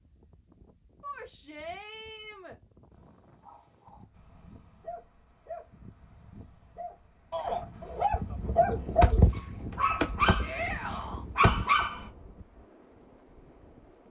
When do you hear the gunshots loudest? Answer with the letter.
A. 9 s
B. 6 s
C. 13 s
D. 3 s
A.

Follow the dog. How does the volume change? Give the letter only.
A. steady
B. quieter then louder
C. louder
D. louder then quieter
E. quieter
C.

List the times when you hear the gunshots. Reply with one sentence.
You can hear the gunshots from 8.1 to 11.8 s.